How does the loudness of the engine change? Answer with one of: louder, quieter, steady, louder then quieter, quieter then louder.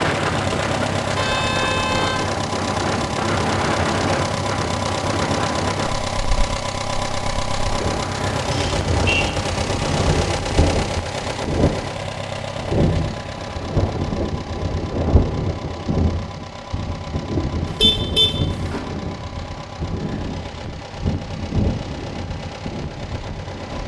quieter.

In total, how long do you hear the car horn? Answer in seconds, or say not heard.
4 s.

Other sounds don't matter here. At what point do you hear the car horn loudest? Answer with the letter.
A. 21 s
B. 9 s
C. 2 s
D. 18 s
D.